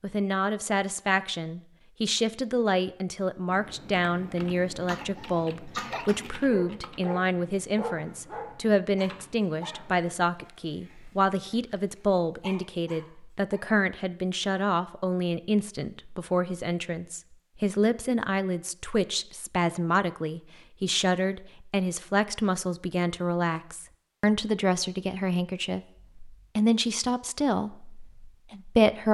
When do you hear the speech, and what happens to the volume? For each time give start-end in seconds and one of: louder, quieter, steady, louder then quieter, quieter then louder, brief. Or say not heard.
0.0-29.0 steady.